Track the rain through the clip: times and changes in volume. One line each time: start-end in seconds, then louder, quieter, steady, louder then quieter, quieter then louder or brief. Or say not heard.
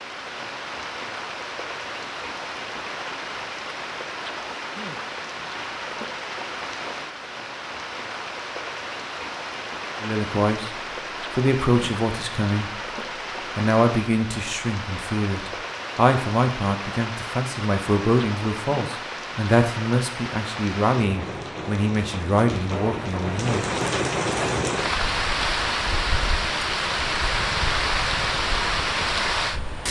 0.0-29.8 louder.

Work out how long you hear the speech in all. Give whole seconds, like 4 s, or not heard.
12 s.